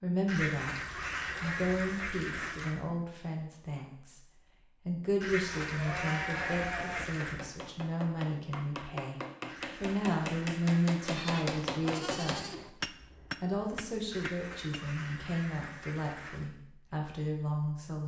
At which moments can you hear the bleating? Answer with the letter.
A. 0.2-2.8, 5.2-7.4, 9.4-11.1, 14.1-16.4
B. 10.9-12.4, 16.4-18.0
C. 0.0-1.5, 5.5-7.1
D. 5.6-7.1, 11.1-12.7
D.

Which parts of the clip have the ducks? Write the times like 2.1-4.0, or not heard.
0.2-2.8, 5.2-7.4, 9.4-11.1, 14.1-16.4.